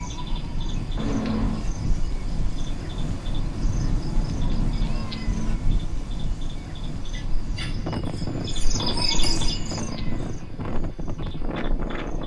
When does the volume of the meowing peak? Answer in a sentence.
The loudest moment of the meowing is at 1 second.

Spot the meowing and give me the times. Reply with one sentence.
You can hear the meowing from 0.9 to 1.6 s, from 4.2 to 5.6 s and from 9.3 to 10.3 s.